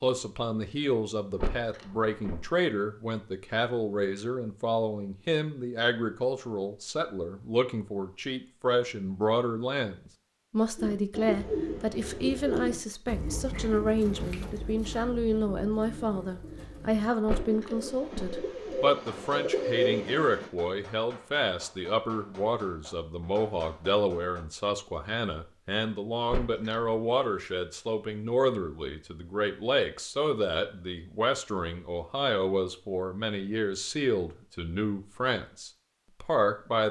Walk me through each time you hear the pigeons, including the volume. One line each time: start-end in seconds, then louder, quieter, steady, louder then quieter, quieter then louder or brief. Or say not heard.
10.8-20.5 quieter then louder.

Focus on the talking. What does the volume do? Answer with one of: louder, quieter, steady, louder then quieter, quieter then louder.
steady.